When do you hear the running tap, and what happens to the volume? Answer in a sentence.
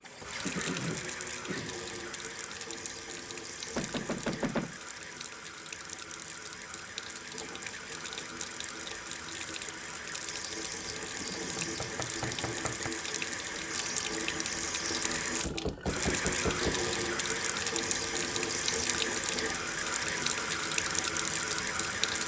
The running tap can be heard from 0.0 to 22.2 s, getting louder.